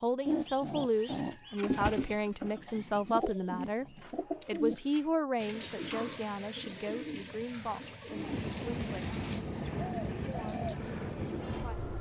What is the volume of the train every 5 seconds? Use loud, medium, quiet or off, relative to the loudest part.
off, loud, loud.